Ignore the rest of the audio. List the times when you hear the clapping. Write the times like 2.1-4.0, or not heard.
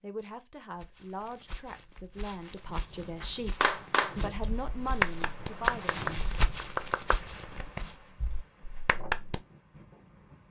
3.2-9.4.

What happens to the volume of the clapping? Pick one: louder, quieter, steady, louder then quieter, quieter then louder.
quieter.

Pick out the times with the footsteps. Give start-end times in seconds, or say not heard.
0.8-8.0.